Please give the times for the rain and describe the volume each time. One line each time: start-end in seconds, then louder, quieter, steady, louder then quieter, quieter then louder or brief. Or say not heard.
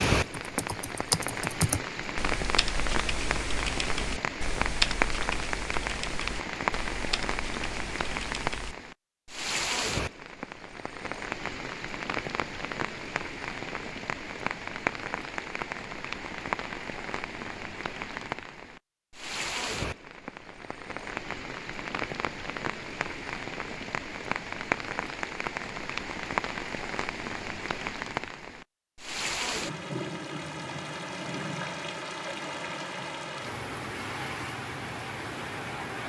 0.0-36.0 steady.